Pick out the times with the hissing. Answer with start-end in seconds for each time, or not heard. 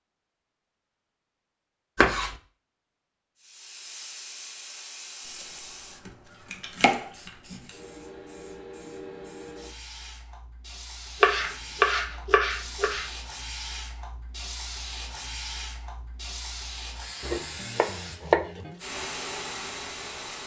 3.4-20.4.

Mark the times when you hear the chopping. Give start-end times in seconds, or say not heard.
1.9-2.4, 5.3-6.1, 6.8-7.6, 11.2-13.1, 17.2-18.8.